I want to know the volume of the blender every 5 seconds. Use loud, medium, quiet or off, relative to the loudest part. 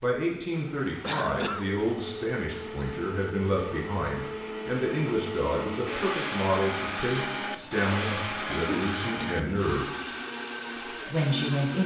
medium, loud, loud.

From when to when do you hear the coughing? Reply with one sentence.
The coughing can be heard from 1.0 to 1.7 s and from 8.5 to 9.4 s.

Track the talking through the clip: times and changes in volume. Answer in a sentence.
You can hear the talking from 0.0 to 9.8 s, at a steady volume; and briefly from 10.9 to 11.8 s.